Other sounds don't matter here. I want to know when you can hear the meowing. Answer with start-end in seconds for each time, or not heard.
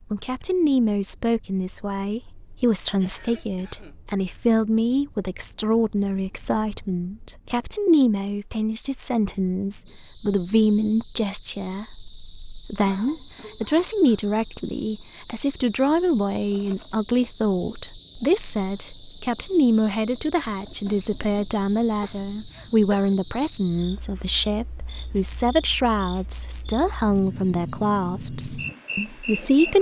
not heard.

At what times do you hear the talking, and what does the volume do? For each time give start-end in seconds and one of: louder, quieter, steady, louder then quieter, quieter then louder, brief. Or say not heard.
0.1-29.7 steady.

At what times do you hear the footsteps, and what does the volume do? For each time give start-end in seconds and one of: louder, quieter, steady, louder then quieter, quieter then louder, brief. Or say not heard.
not heard.